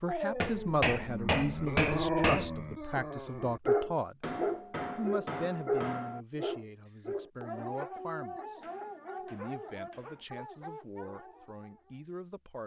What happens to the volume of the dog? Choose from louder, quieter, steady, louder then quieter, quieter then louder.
quieter.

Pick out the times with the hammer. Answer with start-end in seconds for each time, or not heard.
0.4-2.5, 4.2-6.2, 8.6-10.2.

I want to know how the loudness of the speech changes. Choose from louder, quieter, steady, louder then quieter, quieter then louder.
quieter.